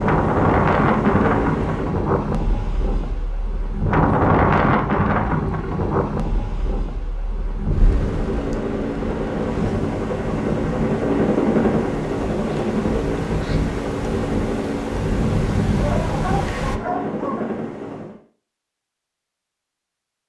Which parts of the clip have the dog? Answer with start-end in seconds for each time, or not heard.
15.8-17.4.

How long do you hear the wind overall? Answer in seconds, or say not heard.
17 s.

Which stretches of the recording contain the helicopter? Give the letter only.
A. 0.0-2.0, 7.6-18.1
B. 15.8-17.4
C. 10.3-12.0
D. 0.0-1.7
A.